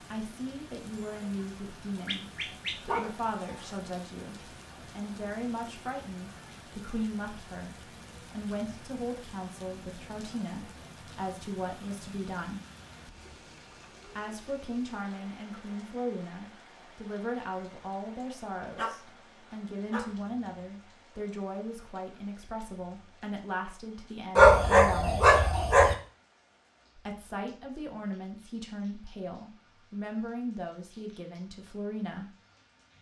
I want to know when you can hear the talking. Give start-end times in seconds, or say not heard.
0.1-12.6, 14.1-25.3, 26.9-32.3.